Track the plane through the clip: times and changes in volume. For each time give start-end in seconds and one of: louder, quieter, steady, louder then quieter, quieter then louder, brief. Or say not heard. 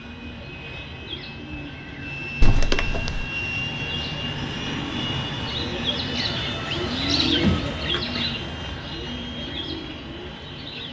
0.0-10.8 louder then quieter.